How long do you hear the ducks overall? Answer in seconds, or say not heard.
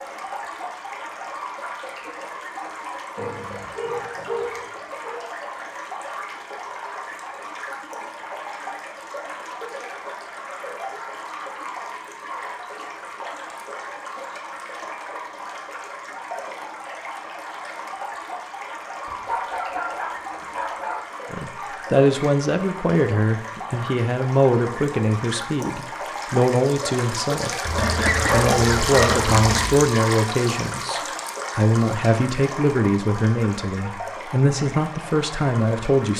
2 s.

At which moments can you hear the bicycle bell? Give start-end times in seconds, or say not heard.
not heard.